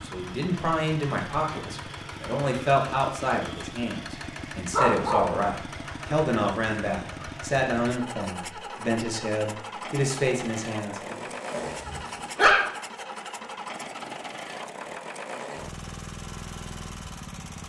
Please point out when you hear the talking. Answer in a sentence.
You can hear the talking from 0.0 to 11.3 s.